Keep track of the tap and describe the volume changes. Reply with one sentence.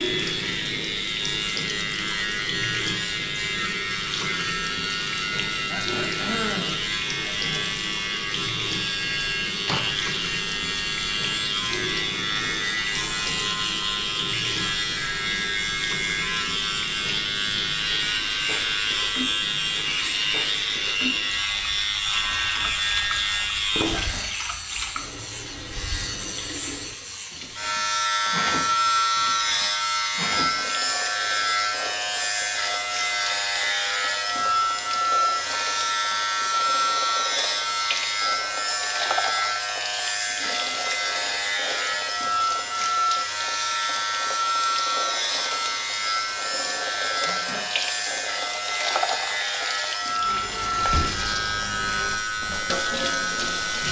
The volume of the tap stays about the same.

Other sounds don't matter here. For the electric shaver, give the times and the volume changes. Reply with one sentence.
The electric shaver can be heard from 0.0 to 53.8 s, at a steady volume.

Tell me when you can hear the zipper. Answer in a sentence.
The zipper can't be heard in this clip.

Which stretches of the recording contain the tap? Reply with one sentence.
You can hear the tap from 0.0 to 53.8 s.